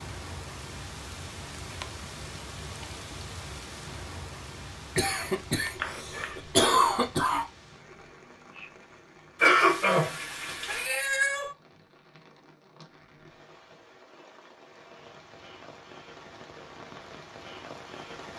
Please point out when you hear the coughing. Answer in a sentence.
You can hear the coughing from 5.0 to 7.5 s and from 9.4 to 10.8 s.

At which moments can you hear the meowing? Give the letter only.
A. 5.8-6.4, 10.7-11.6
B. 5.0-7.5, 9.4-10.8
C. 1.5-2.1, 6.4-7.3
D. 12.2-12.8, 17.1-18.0
A.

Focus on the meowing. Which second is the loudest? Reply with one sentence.
The loudest moment of the meowing is at 11 seconds.